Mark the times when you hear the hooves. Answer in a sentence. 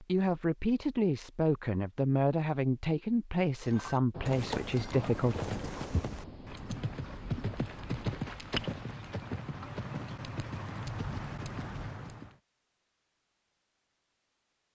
You can hear the hooves from 3.6 to 12.3 s.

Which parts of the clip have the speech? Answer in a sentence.
The speech can be heard from 0.0 to 5.3 s.